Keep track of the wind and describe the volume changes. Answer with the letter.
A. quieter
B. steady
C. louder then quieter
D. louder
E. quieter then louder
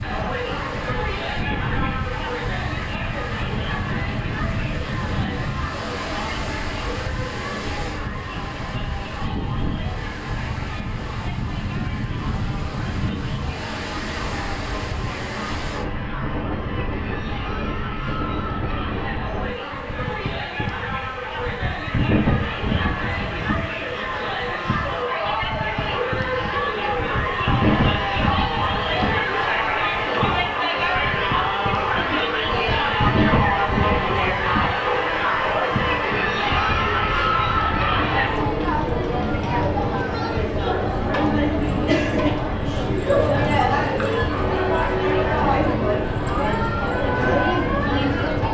B.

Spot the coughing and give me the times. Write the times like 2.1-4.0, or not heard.
not heard.